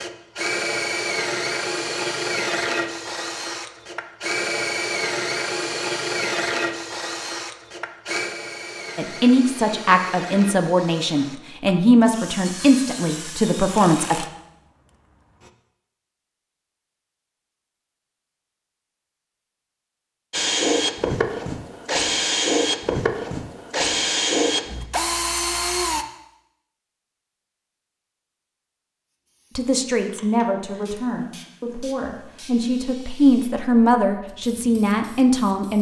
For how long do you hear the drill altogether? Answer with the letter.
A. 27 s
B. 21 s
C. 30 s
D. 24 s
B.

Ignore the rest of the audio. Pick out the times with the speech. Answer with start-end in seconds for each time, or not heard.
8.9-14.2, 29.6-35.7.